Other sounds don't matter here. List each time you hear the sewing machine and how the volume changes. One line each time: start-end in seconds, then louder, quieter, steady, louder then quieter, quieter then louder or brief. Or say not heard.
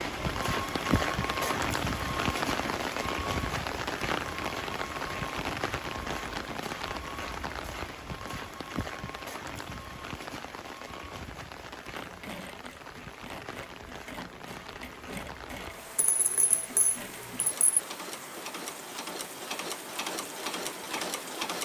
0.0-21.6 quieter then louder.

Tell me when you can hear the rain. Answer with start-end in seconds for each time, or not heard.
0.0-21.6.